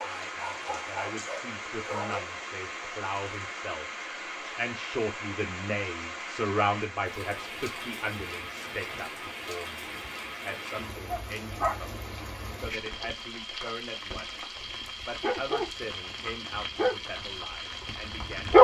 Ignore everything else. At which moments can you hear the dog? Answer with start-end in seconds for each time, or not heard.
0.0-2.2, 11.1-12.8, 14.7-18.5.